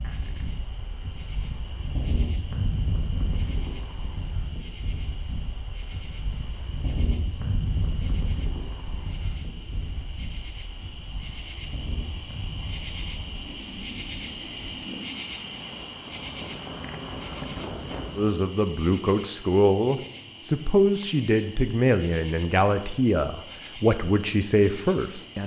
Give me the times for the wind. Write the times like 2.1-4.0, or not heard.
0.0-18.4.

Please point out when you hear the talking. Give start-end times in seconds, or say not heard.
18.1-25.4.